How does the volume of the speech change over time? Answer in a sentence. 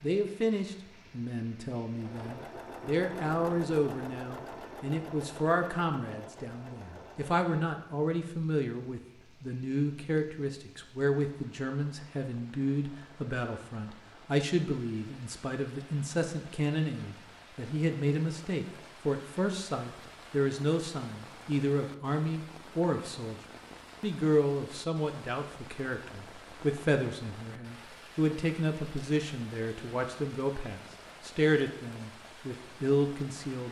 The loudness of the speech stays about the same.